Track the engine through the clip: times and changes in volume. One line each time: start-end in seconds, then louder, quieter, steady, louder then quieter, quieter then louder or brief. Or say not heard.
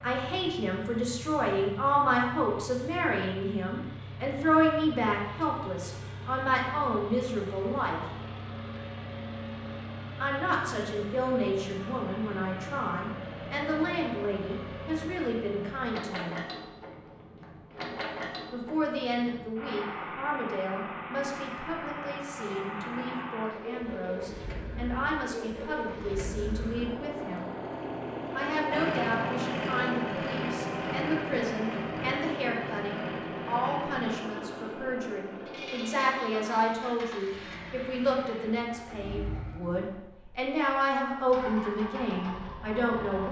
0.0-43.2 louder then quieter.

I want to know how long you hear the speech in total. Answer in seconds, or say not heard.
38 s.